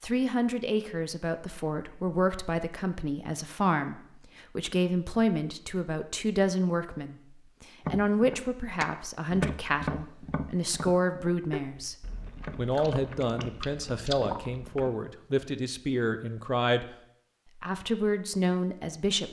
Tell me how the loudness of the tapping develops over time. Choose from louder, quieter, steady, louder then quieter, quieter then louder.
quieter.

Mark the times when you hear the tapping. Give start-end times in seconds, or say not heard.
7.8-13.6.